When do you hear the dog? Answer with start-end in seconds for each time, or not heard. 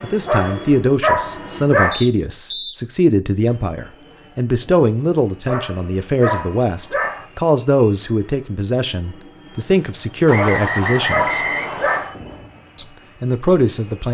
0.2-2.0, 5.5-7.2, 10.3-12.2.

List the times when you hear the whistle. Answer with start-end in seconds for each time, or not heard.
1.9-2.8, 10.2-12.1.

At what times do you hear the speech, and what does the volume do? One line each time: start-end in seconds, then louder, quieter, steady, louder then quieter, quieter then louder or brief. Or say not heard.
0.0-11.4 steady
12.8-14.0 brief.